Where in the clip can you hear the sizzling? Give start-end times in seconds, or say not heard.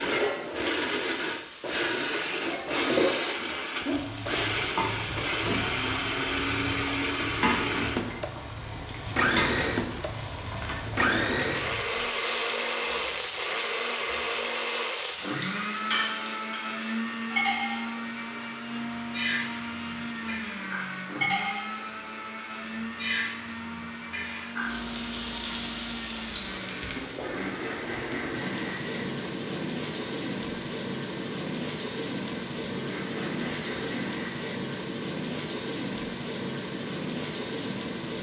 0.0-38.1.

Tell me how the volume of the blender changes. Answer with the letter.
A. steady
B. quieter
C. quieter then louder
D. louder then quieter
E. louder
B.